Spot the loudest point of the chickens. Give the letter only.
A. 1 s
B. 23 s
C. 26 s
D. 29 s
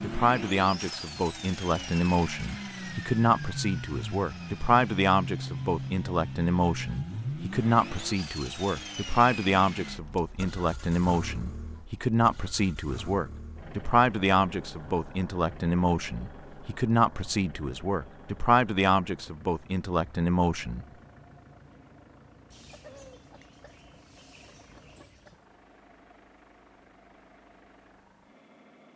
B.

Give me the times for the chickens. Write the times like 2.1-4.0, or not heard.
22.5-25.4.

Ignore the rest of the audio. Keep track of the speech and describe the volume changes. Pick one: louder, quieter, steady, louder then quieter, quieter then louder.
steady.